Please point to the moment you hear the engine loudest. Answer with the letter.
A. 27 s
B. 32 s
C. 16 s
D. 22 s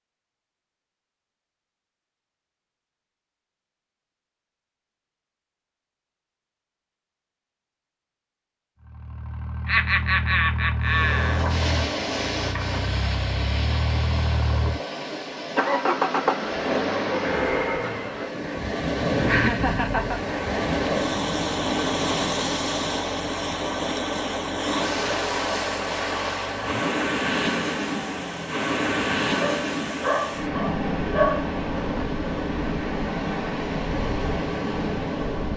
C.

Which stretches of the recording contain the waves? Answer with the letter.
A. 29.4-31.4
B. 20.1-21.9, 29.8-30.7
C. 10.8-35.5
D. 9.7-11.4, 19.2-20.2
C.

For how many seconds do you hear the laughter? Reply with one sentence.
The laughter can be heard for 3 seconds in total.